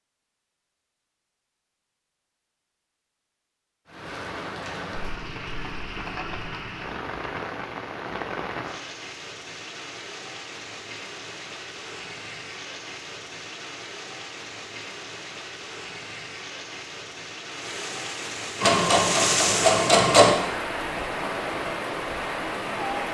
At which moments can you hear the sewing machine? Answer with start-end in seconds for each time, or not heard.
18.6-20.4.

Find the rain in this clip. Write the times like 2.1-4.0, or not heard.
3.9-23.0.